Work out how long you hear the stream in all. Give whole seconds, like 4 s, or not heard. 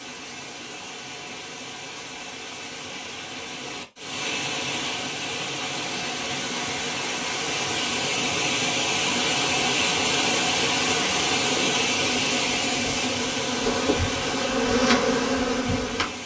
16 s.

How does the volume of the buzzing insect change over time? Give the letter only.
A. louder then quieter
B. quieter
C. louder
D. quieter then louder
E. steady
C.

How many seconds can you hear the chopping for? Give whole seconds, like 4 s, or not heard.
not heard.